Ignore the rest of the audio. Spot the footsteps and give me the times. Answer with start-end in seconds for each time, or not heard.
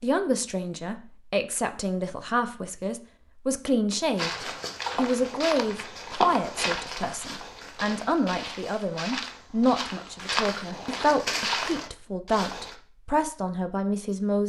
4.2-12.8.